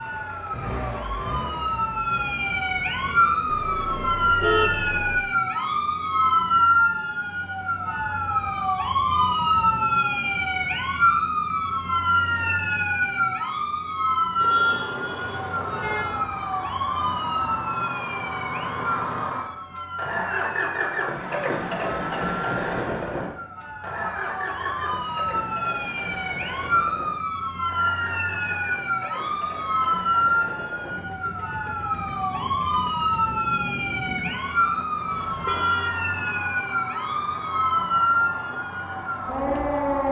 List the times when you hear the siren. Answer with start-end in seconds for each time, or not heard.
0.0-40.0.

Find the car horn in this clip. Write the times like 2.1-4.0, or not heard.
3.5-5.2, 14.3-16.2, 35.0-36.0.